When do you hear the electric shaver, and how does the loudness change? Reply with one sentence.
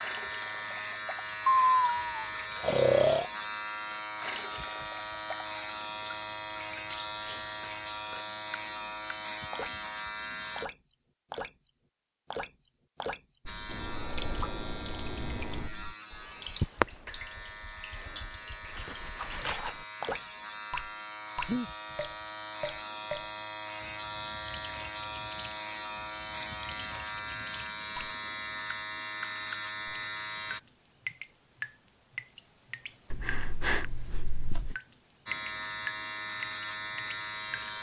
The electric shaver can be heard from 0.0 to 10.7 s, at a steady volume; from 13.4 to 30.6 s, getting louder; and briefly from 35.2 to 37.7 s.